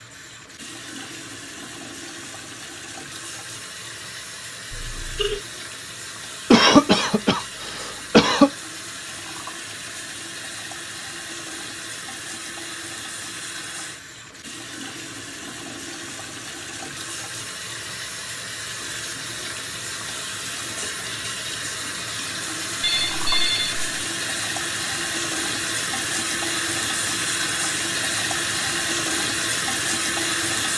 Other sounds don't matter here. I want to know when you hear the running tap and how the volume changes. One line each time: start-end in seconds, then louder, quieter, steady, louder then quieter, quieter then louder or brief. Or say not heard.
0.0-30.7 louder.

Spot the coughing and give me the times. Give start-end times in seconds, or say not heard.
6.5-8.5.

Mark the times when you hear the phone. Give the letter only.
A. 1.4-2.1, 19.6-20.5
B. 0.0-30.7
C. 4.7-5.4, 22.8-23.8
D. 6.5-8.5
C.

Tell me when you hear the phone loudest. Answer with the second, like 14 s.
23 s.